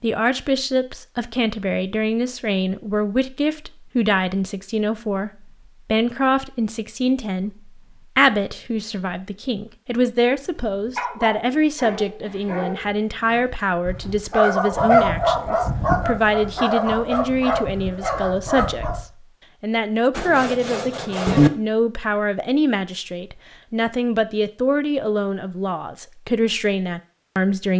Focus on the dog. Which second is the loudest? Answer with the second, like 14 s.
15 s.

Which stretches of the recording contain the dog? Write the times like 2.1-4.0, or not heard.
10.7-19.1.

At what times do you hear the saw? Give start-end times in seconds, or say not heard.
20.1-21.5.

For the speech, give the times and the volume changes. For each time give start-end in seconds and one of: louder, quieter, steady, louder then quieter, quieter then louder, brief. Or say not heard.
0.0-27.7 steady.